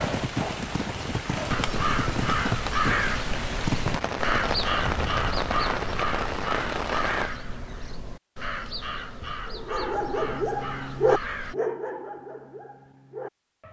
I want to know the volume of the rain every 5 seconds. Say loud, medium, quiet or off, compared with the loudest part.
loud, loud, off.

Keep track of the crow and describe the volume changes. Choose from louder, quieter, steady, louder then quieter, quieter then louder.
quieter.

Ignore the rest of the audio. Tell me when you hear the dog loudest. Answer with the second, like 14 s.
11 s.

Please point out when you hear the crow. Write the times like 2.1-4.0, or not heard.
1.4-11.6.